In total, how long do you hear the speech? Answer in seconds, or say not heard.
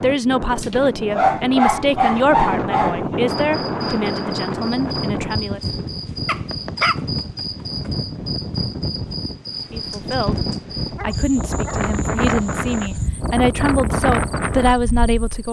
11 s.